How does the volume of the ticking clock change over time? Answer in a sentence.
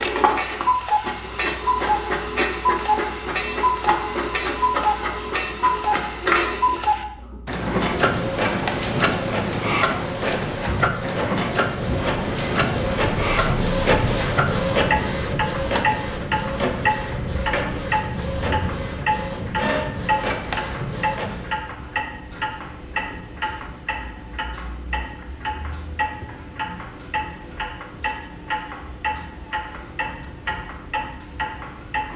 The loudness of the ticking clock goes down.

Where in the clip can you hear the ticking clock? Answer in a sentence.
The ticking clock can be heard from 0.0 to 32.1 s.